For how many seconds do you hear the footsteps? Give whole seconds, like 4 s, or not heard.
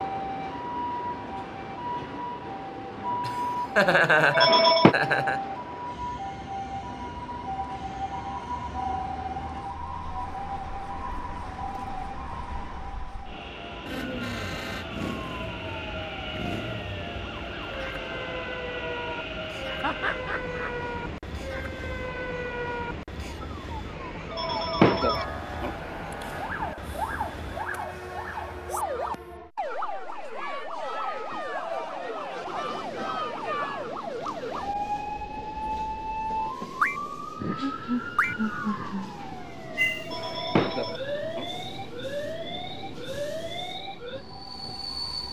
not heard.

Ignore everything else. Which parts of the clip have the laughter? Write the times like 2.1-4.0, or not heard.
3.2-5.4, 19.8-20.7, 37.4-39.4.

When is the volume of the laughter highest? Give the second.
4 s.